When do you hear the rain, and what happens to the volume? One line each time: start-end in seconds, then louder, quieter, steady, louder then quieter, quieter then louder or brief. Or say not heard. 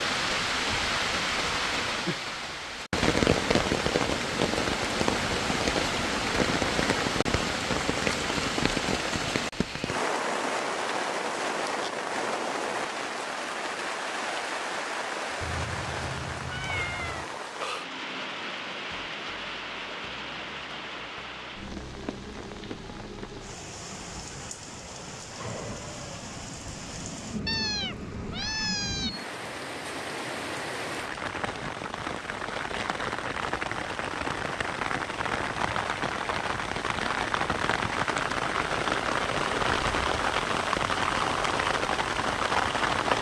0.0-43.1 quieter then louder.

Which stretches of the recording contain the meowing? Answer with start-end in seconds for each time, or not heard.
15.4-17.2, 27.4-29.1.